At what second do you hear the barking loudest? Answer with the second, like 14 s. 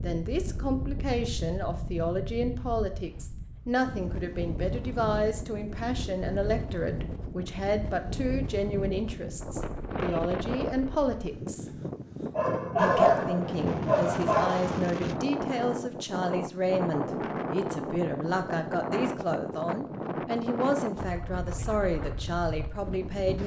13 s.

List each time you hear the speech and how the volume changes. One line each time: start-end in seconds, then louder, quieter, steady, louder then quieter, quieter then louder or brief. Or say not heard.
0.0-11.7 steady
12.8-23.4 steady.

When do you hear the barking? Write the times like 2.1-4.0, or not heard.
12.3-14.8.